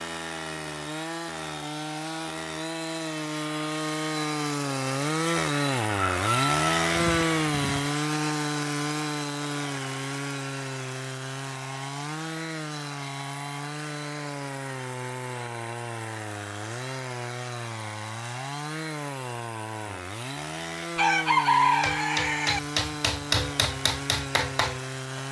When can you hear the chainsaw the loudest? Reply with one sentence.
The loudest moment of the chainsaw is at 7 seconds.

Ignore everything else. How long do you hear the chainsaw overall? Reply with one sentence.
You can hear the chainsaw for 25 seconds altogether.